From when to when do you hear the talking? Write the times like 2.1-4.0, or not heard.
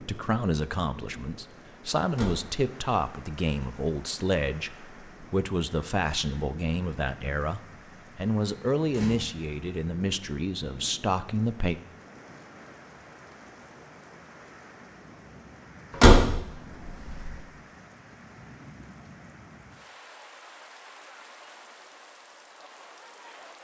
0.0-11.8.